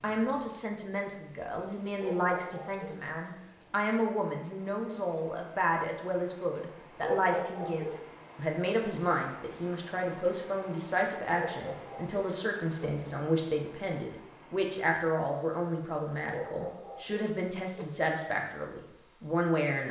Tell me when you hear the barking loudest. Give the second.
7 s.